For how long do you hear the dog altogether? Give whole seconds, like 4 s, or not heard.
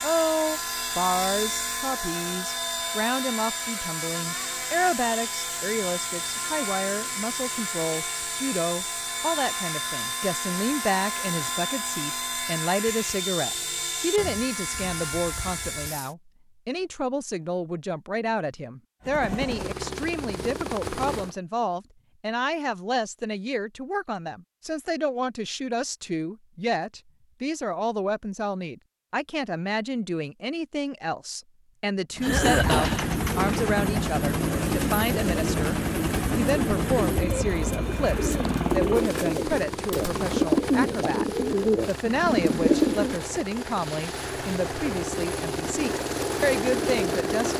not heard.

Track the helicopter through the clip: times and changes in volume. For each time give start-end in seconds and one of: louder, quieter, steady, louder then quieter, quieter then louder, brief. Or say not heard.
0.0-16.1 steady
19.0-21.4 brief
32.1-47.5 quieter then louder.